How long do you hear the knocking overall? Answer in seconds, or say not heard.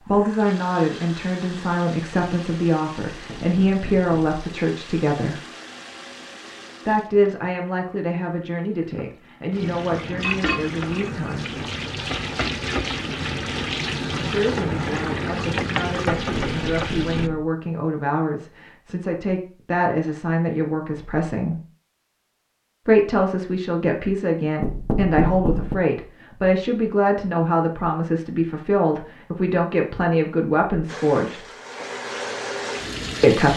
4 s.